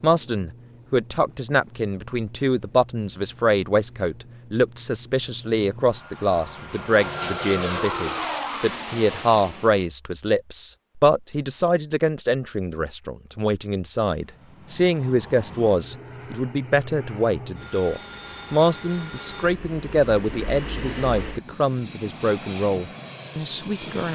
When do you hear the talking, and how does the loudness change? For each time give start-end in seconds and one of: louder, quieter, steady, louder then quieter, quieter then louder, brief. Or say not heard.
0.0-24.1 steady.